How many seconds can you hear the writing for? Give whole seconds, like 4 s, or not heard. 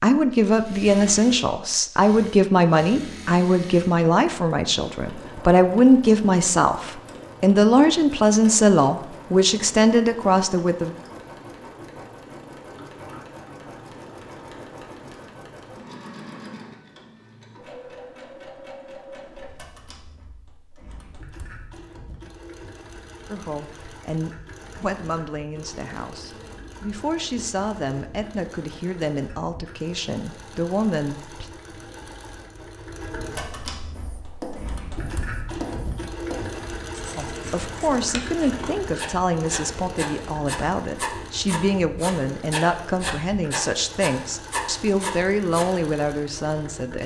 12 s.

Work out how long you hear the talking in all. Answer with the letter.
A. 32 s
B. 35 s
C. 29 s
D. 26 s
C.